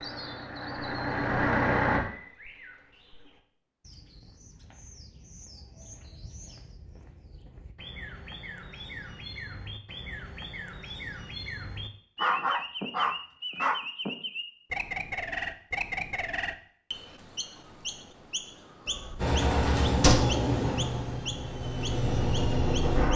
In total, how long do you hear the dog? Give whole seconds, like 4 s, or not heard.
2 s.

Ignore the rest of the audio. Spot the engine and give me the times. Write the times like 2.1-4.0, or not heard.
0.0-2.0, 19.1-23.1.